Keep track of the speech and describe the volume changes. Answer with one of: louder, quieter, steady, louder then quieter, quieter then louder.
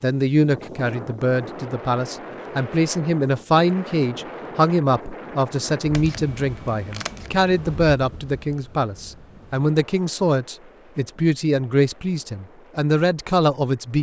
steady.